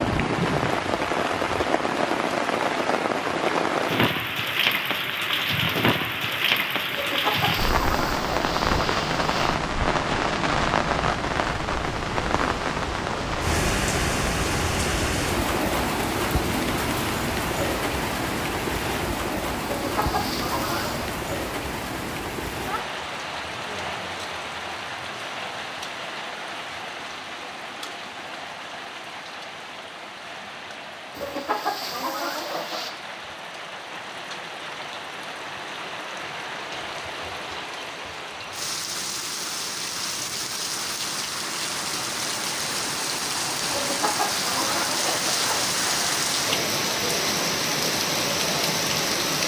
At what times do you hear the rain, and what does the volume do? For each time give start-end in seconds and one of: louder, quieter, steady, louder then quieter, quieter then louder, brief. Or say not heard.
0.0-49.4 quieter then louder.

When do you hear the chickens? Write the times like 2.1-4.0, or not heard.
6.9-9.6, 19.6-21.1, 31.1-32.9, 43.6-45.8.